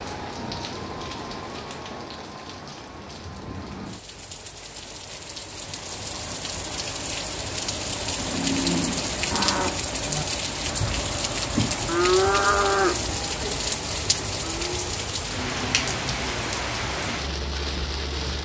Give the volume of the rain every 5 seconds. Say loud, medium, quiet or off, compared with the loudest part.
medium, loud, loud, loud.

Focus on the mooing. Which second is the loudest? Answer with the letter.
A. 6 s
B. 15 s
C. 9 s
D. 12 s
D.